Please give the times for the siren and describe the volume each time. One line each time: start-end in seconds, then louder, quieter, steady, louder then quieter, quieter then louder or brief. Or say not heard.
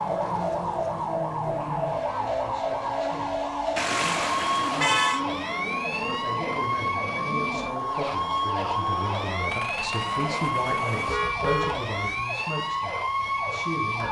0.0-14.0 steady.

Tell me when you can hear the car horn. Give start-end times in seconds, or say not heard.
3.8-5.2, 11.1-12.2.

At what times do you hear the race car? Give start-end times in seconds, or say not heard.
0.0-11.2.